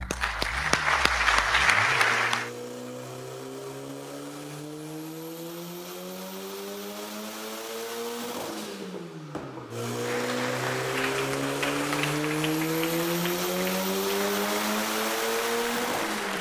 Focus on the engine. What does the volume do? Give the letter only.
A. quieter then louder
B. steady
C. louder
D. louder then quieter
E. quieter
C.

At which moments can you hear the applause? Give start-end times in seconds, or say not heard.
0.0-2.5, 9.9-16.3.